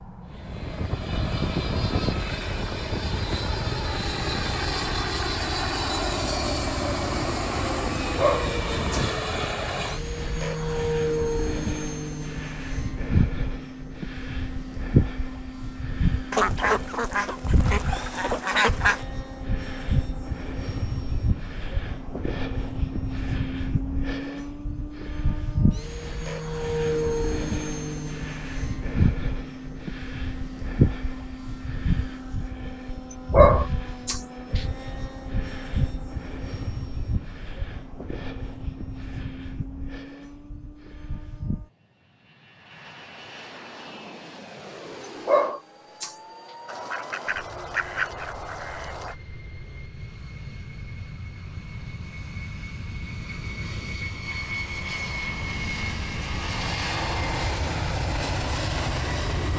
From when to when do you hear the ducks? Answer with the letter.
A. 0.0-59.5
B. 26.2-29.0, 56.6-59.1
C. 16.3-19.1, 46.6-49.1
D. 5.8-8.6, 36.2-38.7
C.